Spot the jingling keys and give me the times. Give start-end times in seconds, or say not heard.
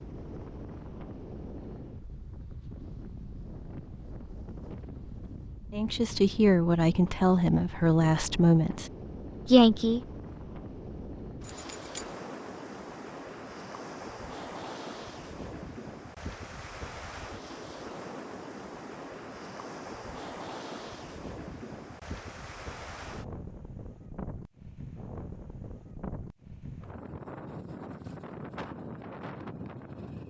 11.4-12.2.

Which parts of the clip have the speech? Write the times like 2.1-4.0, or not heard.
5.7-10.0.